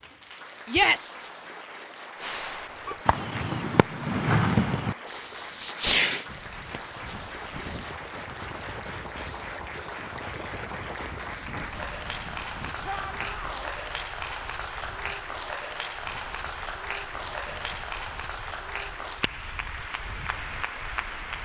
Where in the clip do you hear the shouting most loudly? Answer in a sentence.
The volume of the shouting peaks at 1 second.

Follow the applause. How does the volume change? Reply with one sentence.
The loudness of the applause goes up.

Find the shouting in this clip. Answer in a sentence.
The shouting can be heard from 0.7 to 1.1 s and from 12.8 to 13.7 s.